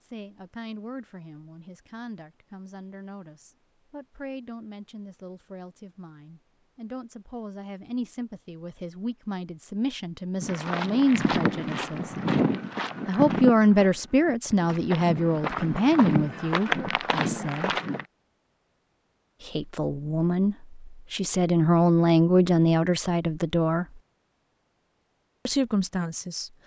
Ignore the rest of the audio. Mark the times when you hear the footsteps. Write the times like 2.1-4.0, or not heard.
10.4-18.1.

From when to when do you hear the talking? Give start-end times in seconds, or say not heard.
0.0-12.1, 13.1-17.7, 19.4-23.9, 25.4-26.5.